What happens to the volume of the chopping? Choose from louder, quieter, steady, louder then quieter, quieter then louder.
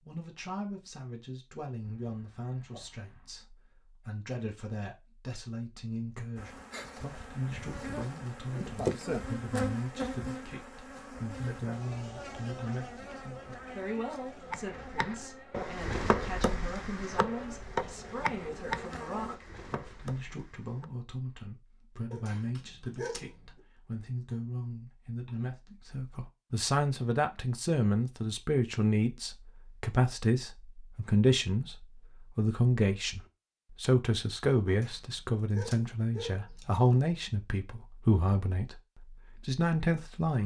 quieter.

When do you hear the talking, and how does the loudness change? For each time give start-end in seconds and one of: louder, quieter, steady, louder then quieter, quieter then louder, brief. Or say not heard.
0.1-40.4 louder.